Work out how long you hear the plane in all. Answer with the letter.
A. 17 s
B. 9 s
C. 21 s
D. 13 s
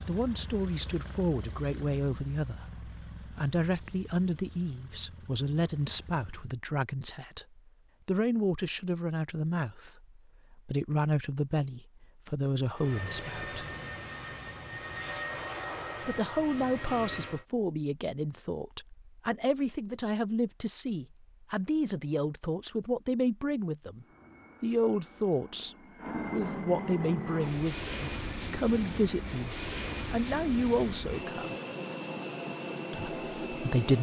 C.